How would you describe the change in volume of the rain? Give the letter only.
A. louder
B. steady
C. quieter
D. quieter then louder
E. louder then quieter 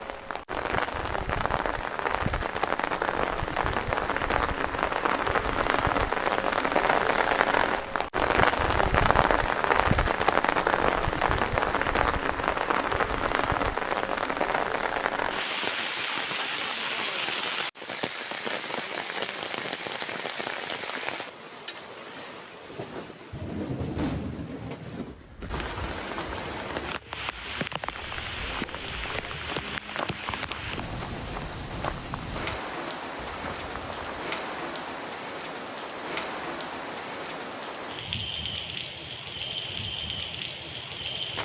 C.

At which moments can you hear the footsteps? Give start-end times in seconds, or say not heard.
27.9-34.3.